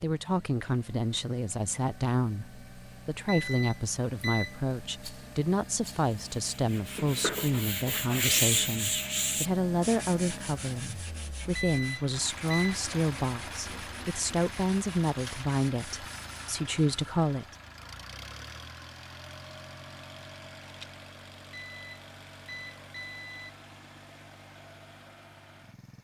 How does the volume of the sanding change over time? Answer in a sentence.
The loudness of the sanding goes down.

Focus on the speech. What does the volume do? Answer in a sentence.
The volume of the speech stays about the same.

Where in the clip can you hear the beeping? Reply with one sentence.
The beeping can be heard from 3.2 to 4.6 s, from 11.6 to 12.8 s and from 21.5 to 23.5 s.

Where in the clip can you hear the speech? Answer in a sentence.
The speech can be heard from 0.0 to 17.6 s.